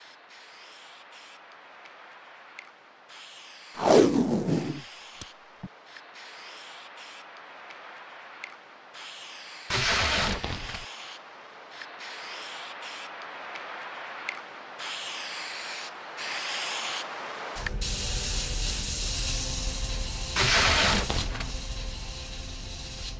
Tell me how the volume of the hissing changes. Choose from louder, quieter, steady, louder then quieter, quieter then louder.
louder.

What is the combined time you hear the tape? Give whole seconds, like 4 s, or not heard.
4 s.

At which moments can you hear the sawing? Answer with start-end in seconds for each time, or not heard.
not heard.